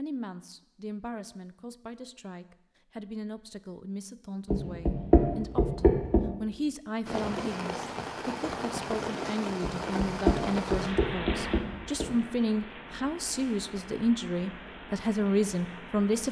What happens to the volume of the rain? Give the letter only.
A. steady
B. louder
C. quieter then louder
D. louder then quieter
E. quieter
E.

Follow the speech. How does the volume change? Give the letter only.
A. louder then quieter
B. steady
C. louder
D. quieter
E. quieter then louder
C.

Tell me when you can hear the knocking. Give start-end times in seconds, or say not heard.
4.5-6.2, 9.6-12.1.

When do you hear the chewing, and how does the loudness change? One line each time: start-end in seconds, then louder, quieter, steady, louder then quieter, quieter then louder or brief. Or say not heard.
not heard.